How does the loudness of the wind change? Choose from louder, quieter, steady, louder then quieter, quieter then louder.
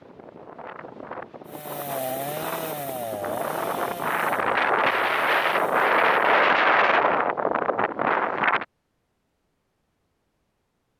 louder.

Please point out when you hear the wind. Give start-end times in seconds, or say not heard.
0.0-8.7.